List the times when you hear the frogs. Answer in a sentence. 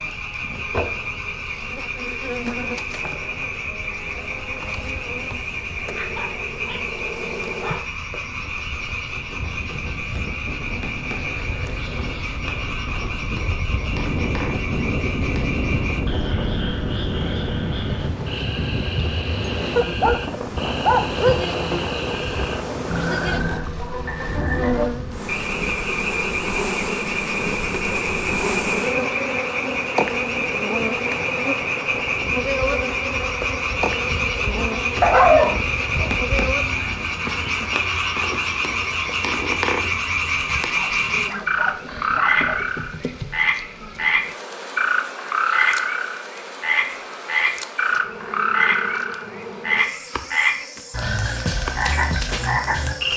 You can hear the frogs from 0.0 to 53.1 s.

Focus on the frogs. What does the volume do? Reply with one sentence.
The loudness of the frogs goes up.